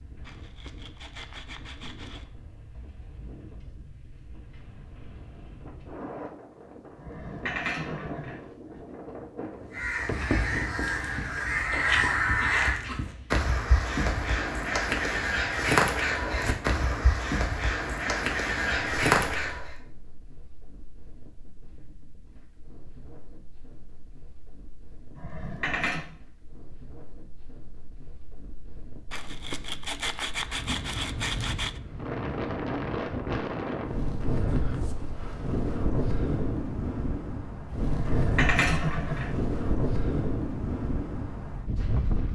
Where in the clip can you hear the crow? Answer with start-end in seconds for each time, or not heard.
9.7-19.8.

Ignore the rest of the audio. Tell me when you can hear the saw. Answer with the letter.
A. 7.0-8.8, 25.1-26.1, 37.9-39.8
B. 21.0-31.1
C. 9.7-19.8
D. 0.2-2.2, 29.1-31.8
D.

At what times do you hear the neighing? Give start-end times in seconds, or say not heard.
7.0-8.8, 25.1-26.1, 37.9-39.8.